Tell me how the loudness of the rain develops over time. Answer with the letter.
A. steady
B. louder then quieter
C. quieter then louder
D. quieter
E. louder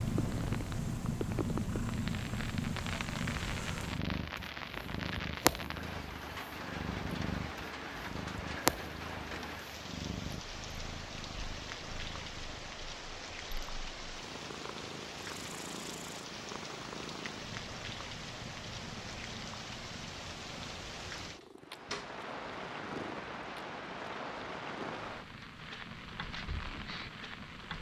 A.